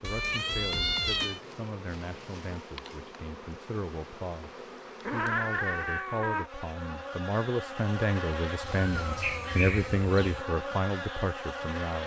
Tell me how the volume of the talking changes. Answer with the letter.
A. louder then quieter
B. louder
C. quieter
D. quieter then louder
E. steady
B.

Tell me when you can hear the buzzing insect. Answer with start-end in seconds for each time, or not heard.
0.0-12.0.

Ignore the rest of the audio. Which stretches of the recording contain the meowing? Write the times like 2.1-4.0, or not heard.
0.0-1.4, 5.0-6.5, 8.6-10.4.